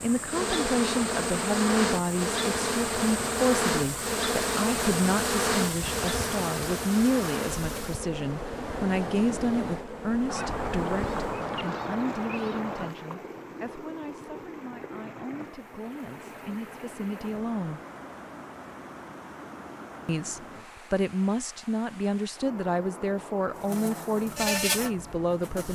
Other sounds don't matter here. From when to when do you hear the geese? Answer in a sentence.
You can hear the geese from 10.2 to 12.9 s.